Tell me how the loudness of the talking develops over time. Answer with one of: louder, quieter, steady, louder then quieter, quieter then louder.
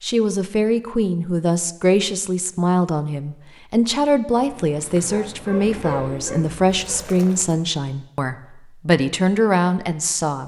steady.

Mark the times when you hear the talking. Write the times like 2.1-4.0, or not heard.
0.0-10.4.